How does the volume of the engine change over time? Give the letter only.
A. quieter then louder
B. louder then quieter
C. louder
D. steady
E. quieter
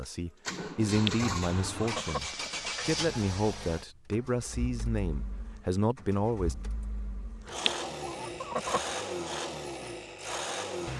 A.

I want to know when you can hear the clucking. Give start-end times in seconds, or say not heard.
0.8-2.7, 7.5-9.0.